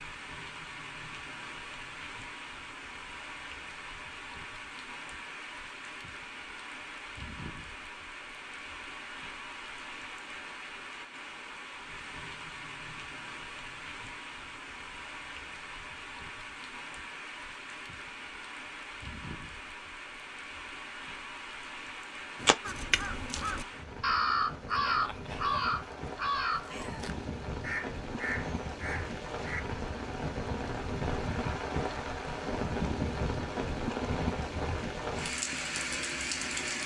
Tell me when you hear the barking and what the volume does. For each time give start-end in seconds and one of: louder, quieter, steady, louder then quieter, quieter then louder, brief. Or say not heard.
not heard.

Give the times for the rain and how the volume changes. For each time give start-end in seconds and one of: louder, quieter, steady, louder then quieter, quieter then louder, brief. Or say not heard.
0.0-36.8 louder.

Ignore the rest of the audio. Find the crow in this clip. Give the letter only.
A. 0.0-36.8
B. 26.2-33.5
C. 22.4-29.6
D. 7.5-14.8
C.